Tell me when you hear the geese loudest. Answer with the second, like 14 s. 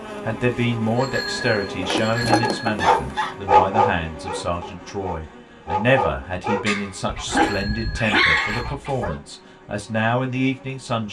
2 s.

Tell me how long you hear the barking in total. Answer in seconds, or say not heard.
7 s.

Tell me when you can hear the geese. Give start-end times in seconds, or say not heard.
1.8-3.3, 7.0-9.1.